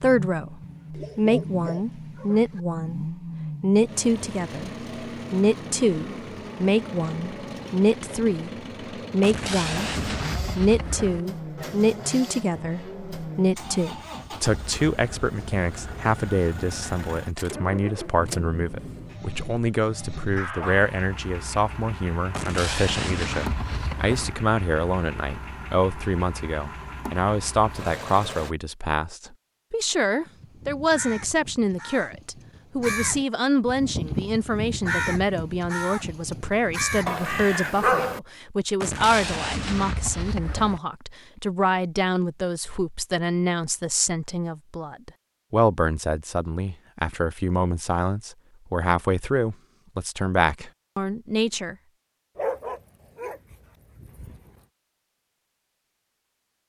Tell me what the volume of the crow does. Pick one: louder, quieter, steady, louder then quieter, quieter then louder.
louder.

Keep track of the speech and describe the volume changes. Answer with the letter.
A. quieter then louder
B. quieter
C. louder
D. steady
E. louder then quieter
D.